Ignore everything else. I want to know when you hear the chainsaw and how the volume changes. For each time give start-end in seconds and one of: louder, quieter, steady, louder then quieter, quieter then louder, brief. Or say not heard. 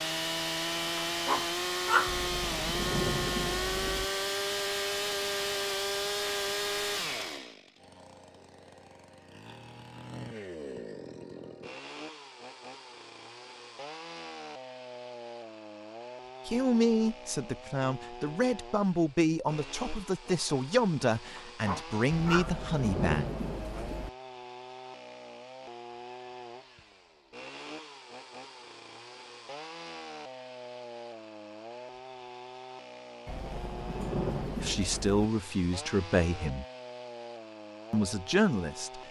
0.0-39.0 quieter.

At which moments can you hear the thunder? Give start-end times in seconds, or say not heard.
2.0-4.0, 22.1-24.1, 33.2-35.3.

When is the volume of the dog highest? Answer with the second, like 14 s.
2 s.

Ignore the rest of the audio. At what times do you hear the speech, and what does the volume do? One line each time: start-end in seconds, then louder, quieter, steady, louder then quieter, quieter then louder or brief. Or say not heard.
16.4-23.2 steady
34.5-36.6 brief
37.9-39.0 brief.